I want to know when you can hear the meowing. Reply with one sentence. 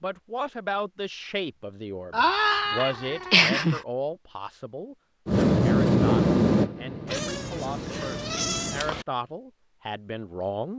You can hear the meowing from 2.1 to 3.8 s and from 7.0 to 9.1 s.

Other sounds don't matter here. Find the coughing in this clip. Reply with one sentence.
You can't hear the coughing here.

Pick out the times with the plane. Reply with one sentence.
The plane can be heard from 5.2 to 8.9 s.